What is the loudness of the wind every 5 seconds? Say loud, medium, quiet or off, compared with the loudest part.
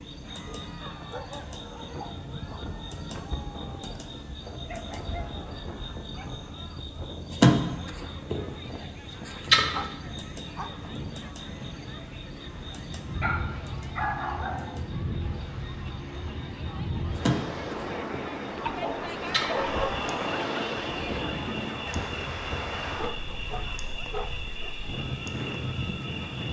medium, medium, medium, loud, loud, loud.